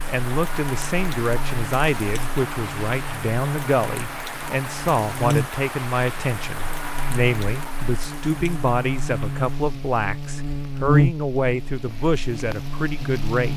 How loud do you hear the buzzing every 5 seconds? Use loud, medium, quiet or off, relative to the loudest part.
quiet, medium, loud.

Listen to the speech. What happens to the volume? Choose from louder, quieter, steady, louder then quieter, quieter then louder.
steady.